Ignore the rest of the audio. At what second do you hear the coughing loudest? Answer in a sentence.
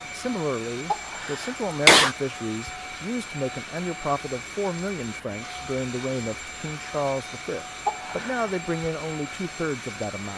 The loudest moment of the coughing is at 2 seconds.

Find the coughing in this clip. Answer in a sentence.
The coughing can be heard from 0.9 to 2.1 s and from 7.8 to 8.5 s.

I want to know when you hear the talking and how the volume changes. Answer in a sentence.
You can hear the talking from 0.1 to 10.3 s, at a steady volume.